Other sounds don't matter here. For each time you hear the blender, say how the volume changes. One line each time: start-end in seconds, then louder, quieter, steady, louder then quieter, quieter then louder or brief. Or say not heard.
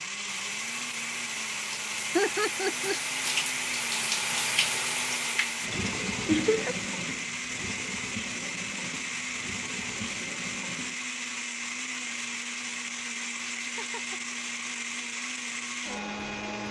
0.0-16.6 steady.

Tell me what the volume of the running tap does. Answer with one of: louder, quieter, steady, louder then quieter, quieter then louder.
louder then quieter.